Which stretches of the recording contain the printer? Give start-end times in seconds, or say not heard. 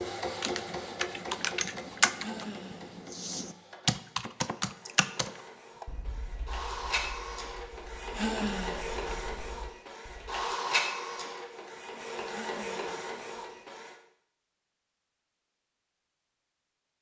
0.0-13.9.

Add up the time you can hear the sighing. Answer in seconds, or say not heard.
2 s.